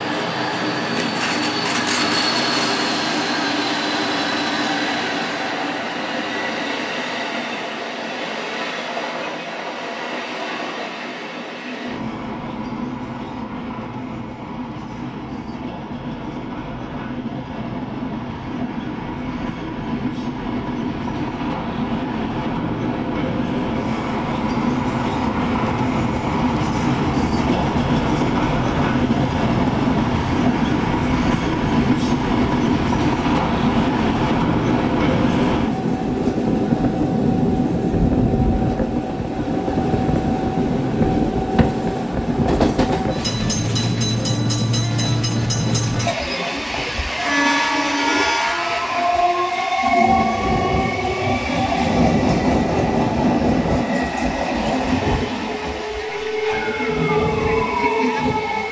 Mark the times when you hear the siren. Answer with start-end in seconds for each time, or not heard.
56.0-58.6.